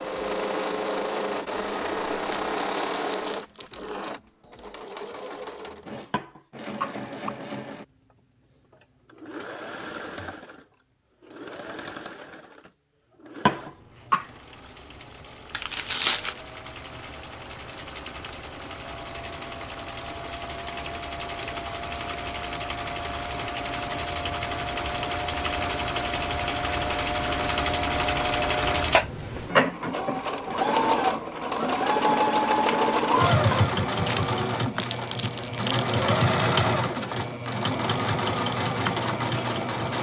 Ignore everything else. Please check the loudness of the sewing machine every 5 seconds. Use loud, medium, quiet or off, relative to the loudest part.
medium, quiet, quiet, quiet, medium, loud, loud, loud.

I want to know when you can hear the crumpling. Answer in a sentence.
You can hear the crumpling from 2.2 to 4.2 s, from 15.5 to 16.4 s and from 34.0 to 36.0 s.